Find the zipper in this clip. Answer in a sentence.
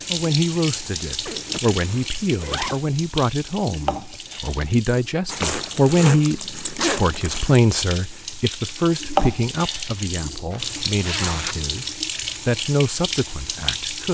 You can hear the zipper from 1.2 to 2.9 s, from 5.3 to 7.6 s and from 10.5 to 11.8 s.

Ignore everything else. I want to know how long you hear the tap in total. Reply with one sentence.
You can hear the tap for 14 seconds altogether.